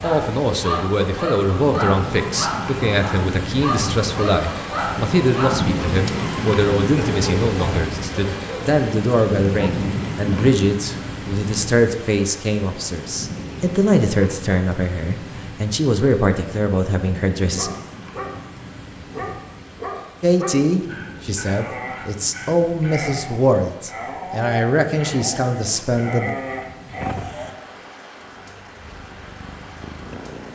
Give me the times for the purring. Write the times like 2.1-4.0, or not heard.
27.0-30.5.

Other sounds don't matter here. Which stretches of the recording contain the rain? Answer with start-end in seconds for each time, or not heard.
0.0-30.5.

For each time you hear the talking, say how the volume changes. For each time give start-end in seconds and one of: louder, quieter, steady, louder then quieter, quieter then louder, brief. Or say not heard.
0.0-17.8 steady
20.2-26.3 steady.